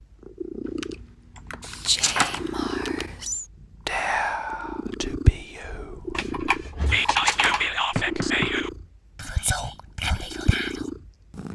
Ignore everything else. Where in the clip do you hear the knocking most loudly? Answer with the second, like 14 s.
2 s.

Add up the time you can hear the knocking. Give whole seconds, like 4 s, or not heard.
3 s.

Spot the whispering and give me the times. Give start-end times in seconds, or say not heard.
1.9-10.9.